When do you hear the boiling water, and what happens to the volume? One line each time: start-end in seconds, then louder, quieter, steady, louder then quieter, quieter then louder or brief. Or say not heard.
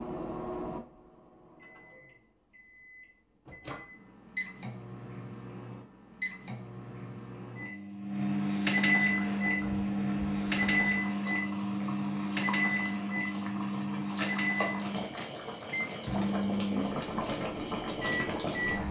9.1-18.8 louder.